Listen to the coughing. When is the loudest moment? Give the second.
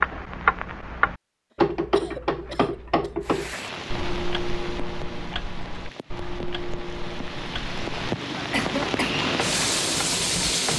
9 s.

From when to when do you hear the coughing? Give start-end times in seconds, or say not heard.
1.9-3.1, 8.3-9.2.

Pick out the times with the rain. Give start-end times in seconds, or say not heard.
3.2-10.7.